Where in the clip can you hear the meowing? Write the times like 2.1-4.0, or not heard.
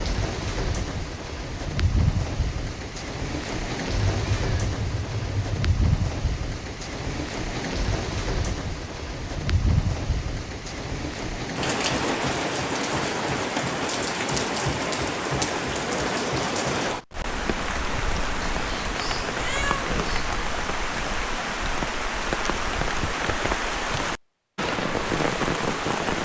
4.1-5.6, 18.4-20.4.